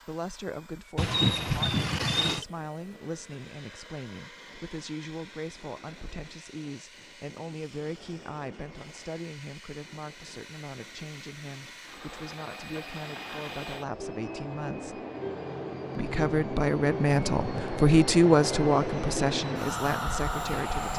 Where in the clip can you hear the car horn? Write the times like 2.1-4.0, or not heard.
0.9-2.5.